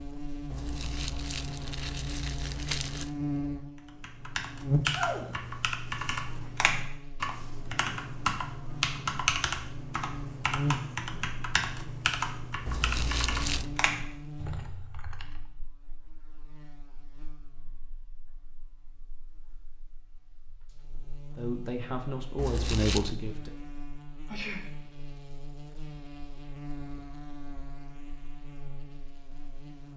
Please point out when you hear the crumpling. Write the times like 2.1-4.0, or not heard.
0.5-3.1, 12.7-13.7, 22.4-23.1.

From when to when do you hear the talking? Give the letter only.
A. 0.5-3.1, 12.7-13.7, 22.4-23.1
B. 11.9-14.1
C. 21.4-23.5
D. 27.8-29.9
C.